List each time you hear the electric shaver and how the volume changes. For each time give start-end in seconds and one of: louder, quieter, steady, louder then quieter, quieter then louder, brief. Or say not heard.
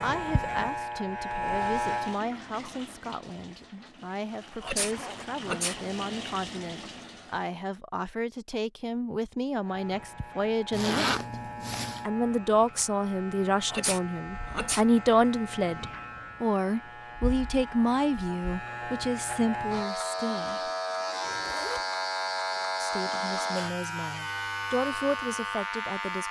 0.0-2.2 brief
9.6-26.2 louder.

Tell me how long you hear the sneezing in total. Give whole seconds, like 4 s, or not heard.
2 s.